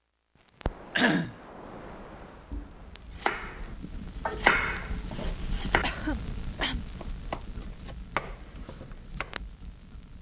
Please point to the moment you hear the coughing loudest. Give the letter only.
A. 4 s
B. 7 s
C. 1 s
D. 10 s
C.